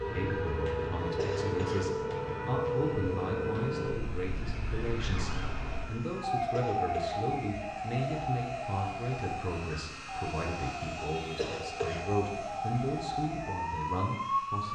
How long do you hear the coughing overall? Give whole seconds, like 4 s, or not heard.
2 s.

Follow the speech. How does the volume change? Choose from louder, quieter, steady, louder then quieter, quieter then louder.
steady.